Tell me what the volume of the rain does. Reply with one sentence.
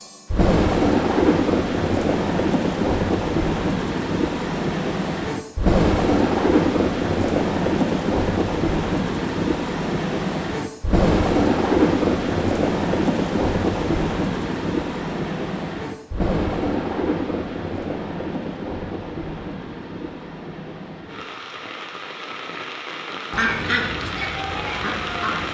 The loudness of the rain goes down.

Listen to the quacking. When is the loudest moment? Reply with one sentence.
The volume of the quacking peaks at 24 seconds.